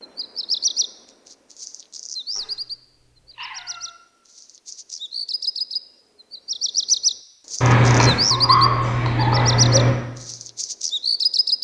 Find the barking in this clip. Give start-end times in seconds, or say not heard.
7.6-9.9.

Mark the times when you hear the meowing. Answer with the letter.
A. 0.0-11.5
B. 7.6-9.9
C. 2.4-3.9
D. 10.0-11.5
C.